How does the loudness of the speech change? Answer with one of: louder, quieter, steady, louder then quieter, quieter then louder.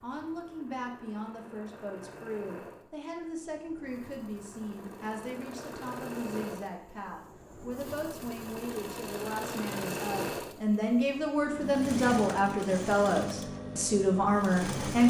louder.